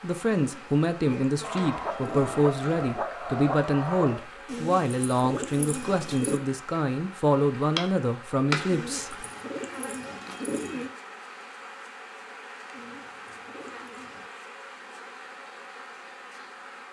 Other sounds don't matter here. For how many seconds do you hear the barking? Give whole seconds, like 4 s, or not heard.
3 s.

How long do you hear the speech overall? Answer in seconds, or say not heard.
9 s.